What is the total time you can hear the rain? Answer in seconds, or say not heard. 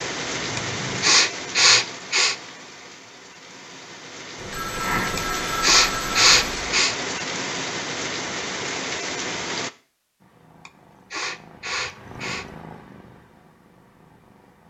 10 s.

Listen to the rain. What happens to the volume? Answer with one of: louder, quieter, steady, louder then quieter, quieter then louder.
quieter then louder.